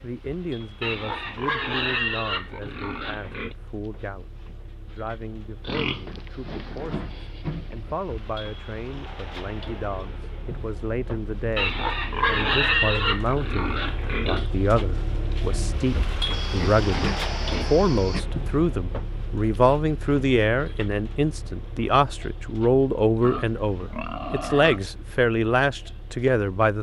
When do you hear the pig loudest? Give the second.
13 s.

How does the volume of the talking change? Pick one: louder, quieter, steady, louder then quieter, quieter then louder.
louder.